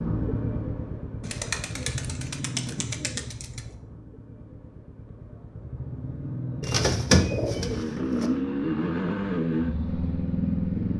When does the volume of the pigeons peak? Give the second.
7 s.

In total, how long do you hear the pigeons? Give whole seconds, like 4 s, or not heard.
4 s.